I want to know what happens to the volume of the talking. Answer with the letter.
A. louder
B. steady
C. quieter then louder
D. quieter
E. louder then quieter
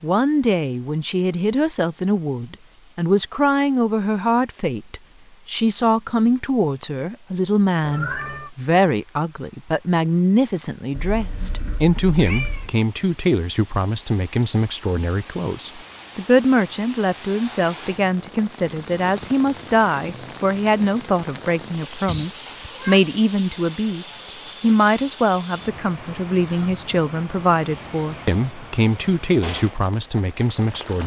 B.